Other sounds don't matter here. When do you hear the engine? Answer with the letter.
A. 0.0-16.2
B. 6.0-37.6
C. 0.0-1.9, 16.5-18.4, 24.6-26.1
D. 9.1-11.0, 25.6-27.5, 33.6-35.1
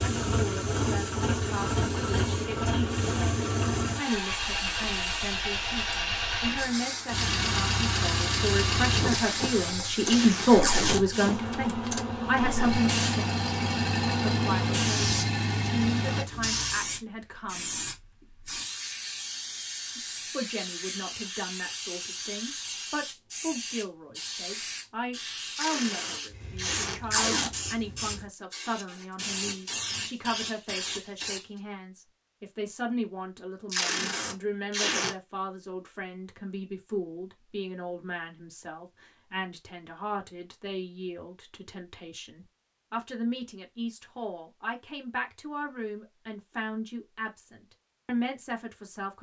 A.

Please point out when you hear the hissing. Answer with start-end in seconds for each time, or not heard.
0.0-31.6.